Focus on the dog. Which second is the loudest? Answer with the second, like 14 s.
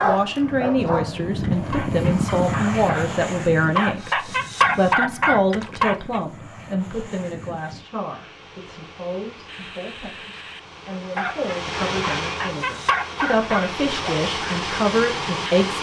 5 s.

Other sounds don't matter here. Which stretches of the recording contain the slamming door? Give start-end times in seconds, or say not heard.
not heard.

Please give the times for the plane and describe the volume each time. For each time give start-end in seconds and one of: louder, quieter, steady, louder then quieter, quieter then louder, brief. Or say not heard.
0.0-15.7 quieter then louder.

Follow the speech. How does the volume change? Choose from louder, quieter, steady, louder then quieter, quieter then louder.
quieter then louder.